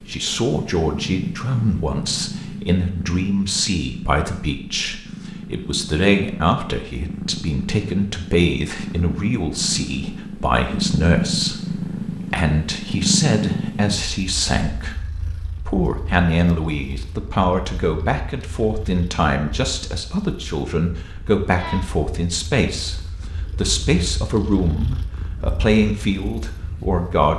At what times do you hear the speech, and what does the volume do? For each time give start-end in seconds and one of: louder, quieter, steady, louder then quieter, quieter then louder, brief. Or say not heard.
0.0-27.3 steady.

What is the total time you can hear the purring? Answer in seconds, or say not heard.
27 s.